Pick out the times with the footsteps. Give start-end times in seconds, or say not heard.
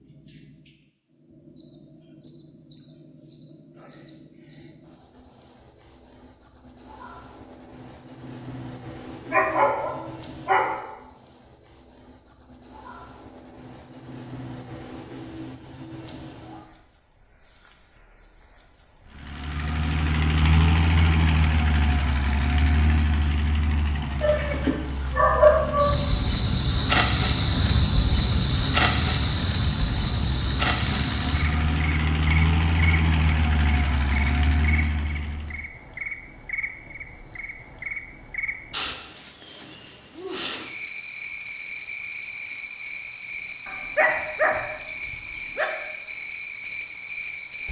not heard.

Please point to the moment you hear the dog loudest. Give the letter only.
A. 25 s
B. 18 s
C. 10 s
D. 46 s
A.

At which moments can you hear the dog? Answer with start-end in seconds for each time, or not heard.
9.3-10.9, 24.2-26.0, 43.6-45.6.